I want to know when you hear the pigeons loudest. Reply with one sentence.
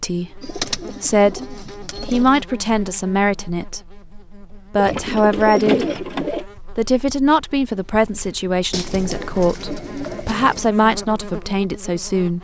The loudest moment of the pigeons is at 6 seconds.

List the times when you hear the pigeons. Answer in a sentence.
You can hear the pigeons from 0.4 to 2.4 s, from 4.8 to 6.5 s and from 8.7 to 10.7 s.